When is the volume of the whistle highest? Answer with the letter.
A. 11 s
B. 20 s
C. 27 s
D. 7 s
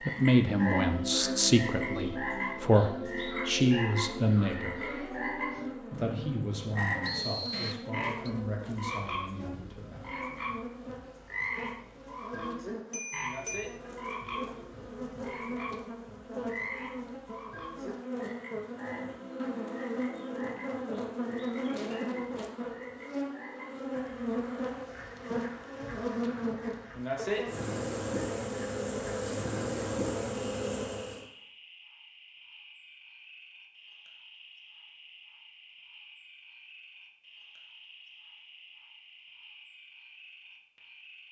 D.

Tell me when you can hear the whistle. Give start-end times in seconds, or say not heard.
7.0-8.3, 26.2-26.9.